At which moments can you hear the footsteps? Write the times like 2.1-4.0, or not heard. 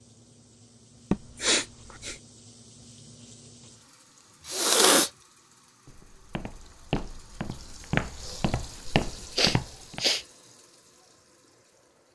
5.8-10.1.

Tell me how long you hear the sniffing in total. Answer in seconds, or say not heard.
3 s.